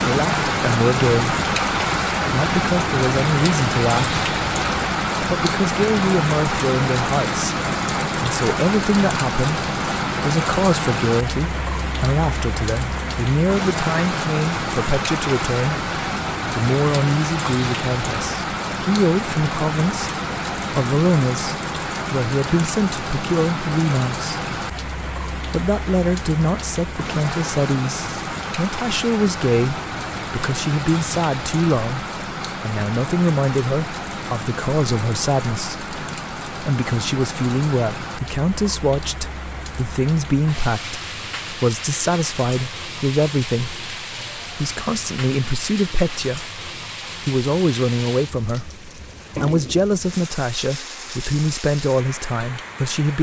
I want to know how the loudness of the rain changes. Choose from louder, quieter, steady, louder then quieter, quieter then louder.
quieter.